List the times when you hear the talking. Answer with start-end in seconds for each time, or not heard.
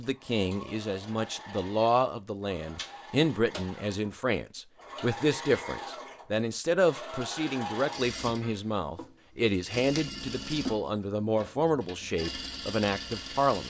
0.0-13.6.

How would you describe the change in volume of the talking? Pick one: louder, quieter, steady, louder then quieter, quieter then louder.
steady.